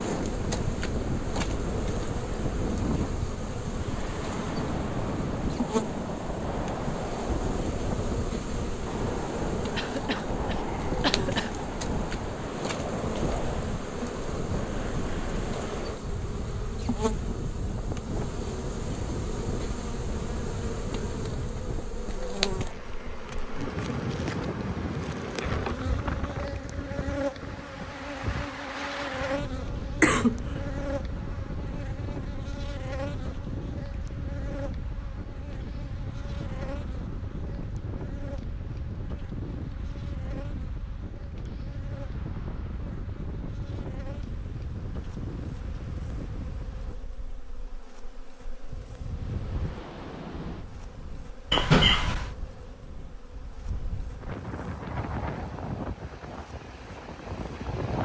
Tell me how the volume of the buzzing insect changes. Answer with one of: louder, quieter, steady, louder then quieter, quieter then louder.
quieter.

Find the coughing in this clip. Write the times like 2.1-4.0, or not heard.
9.8-11.5, 30.0-30.4, 51.5-52.3.